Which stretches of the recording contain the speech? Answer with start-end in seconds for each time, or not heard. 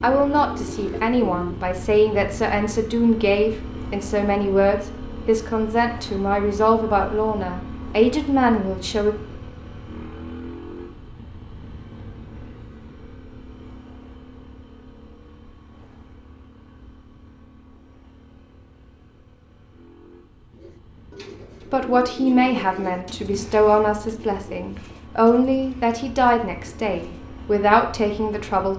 0.0-9.2, 21.6-28.7.